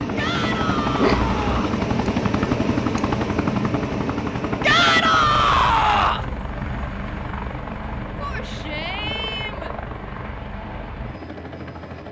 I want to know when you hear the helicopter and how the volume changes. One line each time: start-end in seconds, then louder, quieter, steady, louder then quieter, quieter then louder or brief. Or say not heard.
0.0-12.0 quieter.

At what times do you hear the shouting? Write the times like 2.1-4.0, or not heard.
0.1-1.8, 4.6-6.2, 8.2-9.8.